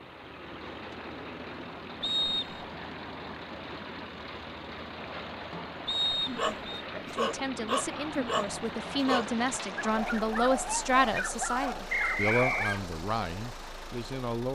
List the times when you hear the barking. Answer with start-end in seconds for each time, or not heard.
6.2-12.8.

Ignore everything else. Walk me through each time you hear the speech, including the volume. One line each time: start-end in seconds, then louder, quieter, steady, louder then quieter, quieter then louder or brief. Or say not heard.
6.9-14.5 louder then quieter.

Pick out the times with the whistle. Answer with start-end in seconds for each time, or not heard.
2.0-2.6, 5.8-6.8, 11.9-12.8.